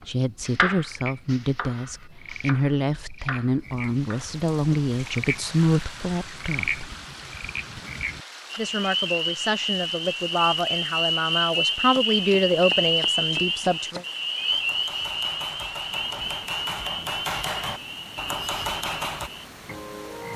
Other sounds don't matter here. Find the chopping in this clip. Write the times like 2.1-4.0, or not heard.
0.5-4.8, 11.9-19.3.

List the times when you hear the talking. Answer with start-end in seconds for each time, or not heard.
0.1-6.8, 8.6-14.0.